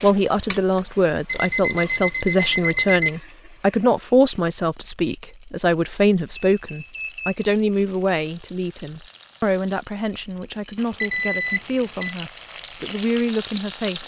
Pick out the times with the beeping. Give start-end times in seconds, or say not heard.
1.2-3.1, 6.3-7.5, 11.0-12.2.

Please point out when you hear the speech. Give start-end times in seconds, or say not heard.
0.0-14.0.